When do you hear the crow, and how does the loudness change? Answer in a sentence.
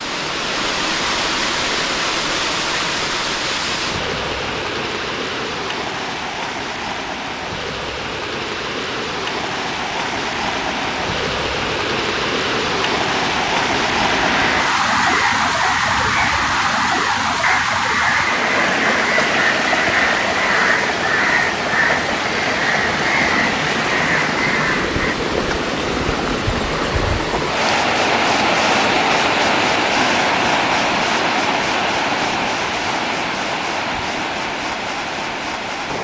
The crow can be heard from 14.2 to 25.1 s, at a steady volume.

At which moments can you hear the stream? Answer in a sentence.
You can hear the stream from 0.0 to 35.9 s.